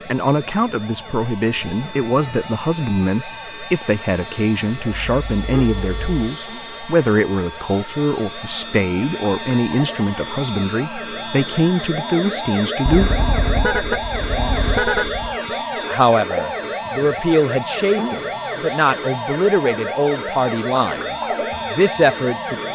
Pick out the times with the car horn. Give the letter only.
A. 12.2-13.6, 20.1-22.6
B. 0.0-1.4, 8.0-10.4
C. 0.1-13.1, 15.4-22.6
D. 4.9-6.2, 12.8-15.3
D.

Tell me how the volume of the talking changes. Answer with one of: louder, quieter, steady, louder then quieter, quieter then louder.
steady.